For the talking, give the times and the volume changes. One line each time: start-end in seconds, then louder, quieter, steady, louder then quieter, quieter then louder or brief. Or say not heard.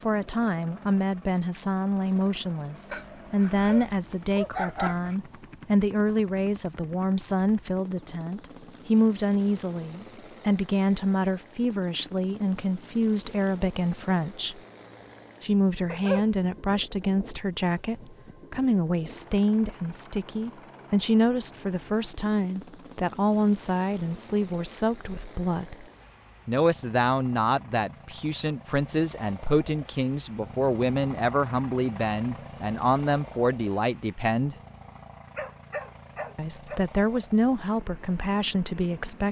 0.0-14.6 steady
15.4-25.9 steady
26.4-34.5 steady
36.4-39.2 brief.